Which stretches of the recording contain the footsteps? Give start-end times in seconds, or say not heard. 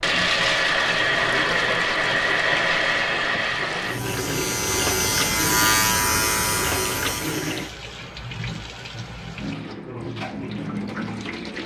not heard.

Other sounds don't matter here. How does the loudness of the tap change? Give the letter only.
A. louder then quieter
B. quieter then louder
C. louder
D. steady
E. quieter
E.